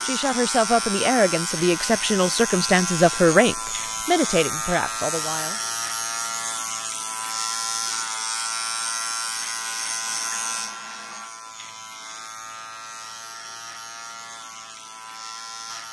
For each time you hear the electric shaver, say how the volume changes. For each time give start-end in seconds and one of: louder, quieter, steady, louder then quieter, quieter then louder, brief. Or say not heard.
0.0-15.8 quieter.